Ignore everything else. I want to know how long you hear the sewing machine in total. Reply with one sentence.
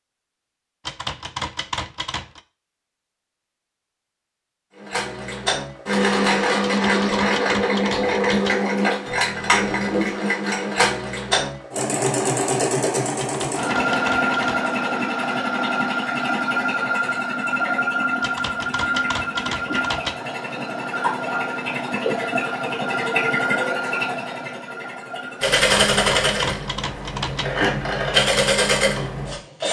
You can hear the sewing machine for 25 seconds altogether.